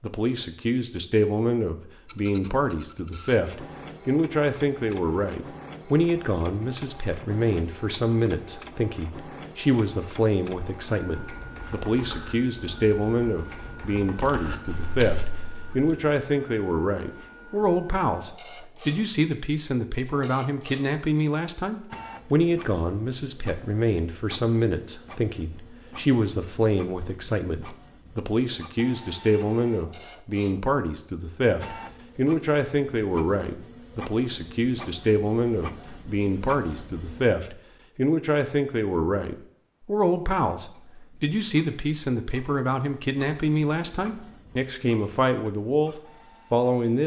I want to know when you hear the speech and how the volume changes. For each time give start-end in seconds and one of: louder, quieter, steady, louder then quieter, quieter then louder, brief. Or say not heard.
0.0-47.0 steady.